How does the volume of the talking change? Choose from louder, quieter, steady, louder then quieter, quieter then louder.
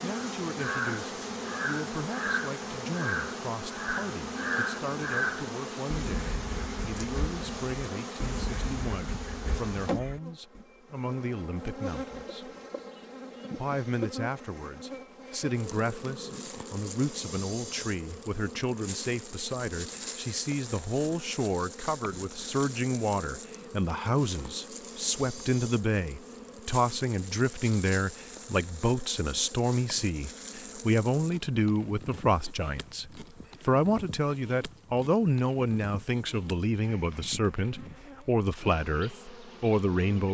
louder.